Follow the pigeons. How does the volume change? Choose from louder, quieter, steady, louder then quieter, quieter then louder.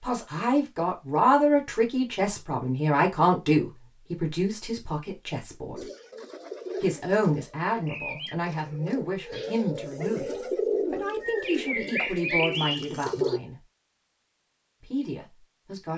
louder.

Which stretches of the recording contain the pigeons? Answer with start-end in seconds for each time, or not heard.
5.8-13.4.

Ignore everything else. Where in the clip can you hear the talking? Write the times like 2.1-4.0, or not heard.
0.0-5.8, 6.8-10.3, 10.9-13.6, 14.8-15.9.